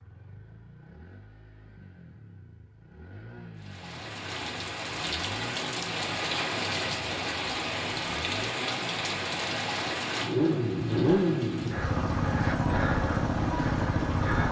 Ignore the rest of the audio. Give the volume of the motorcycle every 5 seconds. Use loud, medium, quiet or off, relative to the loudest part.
quiet, quiet, loud.